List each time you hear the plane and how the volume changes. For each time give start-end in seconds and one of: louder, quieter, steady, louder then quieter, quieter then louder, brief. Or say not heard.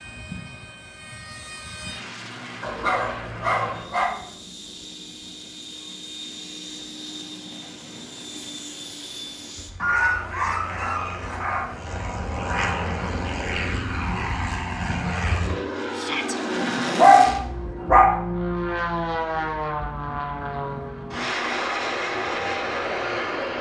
0.0-23.5 louder.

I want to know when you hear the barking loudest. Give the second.
17 s.